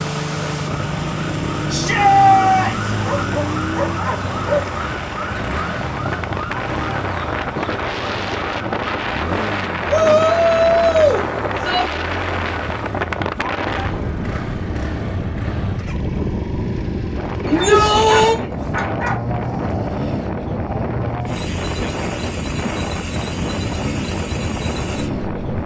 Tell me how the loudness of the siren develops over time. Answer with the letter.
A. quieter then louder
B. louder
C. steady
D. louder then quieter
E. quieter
E.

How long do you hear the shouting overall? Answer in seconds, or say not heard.
4 s.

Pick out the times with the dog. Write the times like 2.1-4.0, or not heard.
3.0-4.7, 17.4-19.2.